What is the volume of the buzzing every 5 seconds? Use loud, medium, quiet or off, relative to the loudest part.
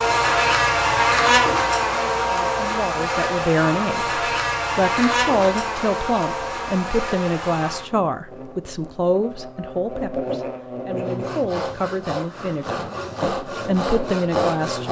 loud, medium, medium.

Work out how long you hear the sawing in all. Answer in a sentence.
You can hear the sawing for 4 seconds altogether.